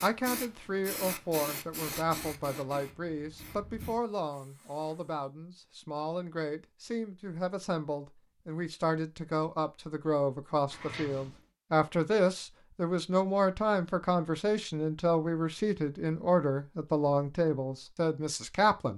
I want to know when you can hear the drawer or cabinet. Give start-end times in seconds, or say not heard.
10.7-11.4.